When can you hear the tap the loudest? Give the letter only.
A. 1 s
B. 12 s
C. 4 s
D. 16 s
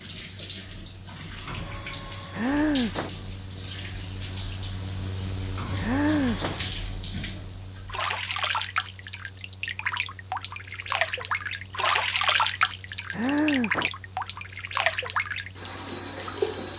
B.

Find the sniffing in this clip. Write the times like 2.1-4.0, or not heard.
2.3-3.1, 5.8-6.5, 13.1-13.9.